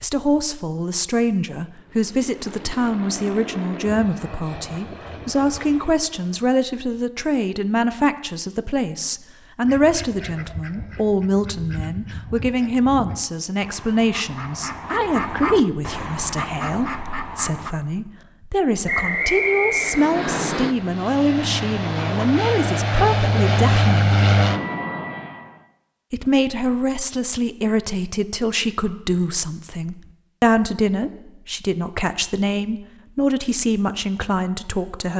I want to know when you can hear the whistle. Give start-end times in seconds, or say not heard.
18.9-20.4.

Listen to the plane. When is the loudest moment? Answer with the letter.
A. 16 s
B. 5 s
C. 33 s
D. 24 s
D.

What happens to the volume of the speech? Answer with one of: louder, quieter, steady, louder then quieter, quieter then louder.
steady.